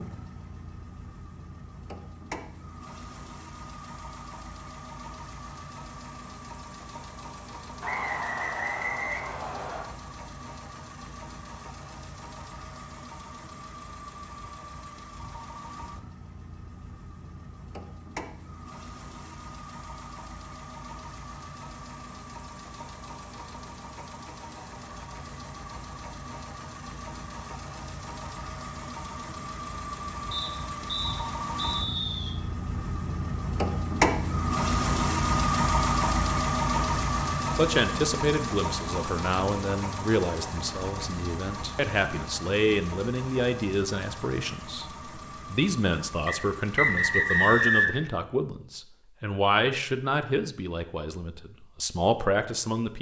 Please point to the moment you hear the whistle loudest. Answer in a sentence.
The loudest moment of the whistle is at 48 seconds.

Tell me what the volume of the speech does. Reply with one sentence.
The loudness of the speech stays about the same.